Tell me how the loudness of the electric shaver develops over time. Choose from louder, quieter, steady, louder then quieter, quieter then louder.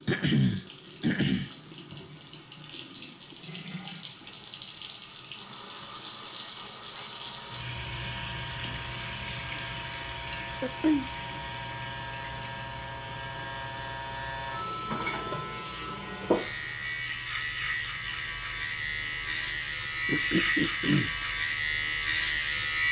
louder.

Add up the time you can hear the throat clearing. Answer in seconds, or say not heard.
3 s.